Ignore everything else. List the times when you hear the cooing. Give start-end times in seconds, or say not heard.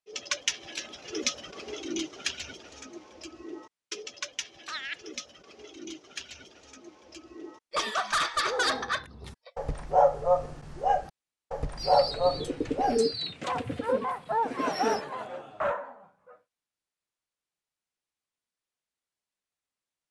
0.1-8.2, 11.8-15.0.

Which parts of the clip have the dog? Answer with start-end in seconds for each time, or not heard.
8.3-16.4.